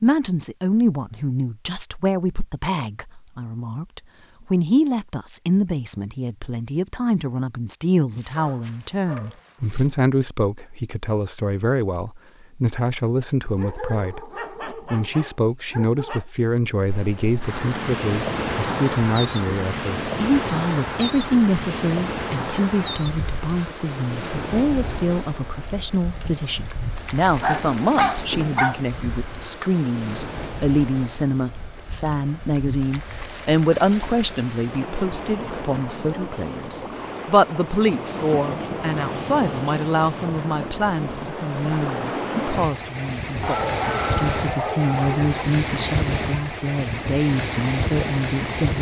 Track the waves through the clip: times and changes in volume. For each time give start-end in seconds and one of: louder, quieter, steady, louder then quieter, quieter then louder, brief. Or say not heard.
16.9-48.7 quieter then louder.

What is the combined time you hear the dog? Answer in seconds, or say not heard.
8 s.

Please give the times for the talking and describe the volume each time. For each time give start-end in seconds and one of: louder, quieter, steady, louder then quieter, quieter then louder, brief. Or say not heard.
0.0-48.7 steady.